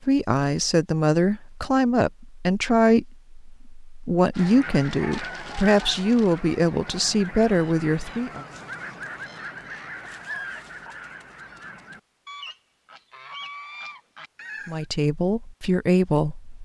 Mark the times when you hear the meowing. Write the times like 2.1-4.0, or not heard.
not heard.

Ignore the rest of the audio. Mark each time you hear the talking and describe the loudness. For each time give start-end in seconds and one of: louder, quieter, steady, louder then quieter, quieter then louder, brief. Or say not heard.
0.1-8.4 steady
14.7-16.6 brief.